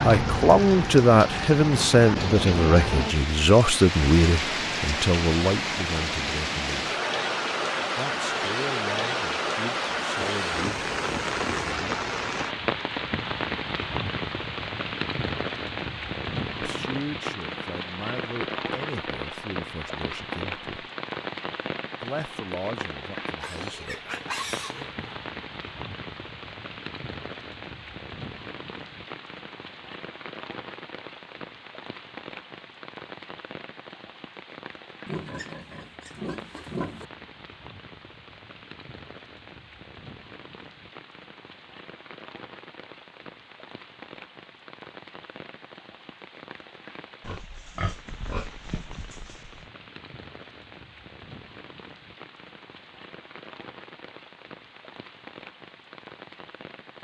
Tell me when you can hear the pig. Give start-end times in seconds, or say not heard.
10.4-11.7, 23.4-25.1, 35.0-37.0, 47.2-49.6.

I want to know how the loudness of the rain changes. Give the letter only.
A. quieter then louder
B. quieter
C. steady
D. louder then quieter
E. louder
B.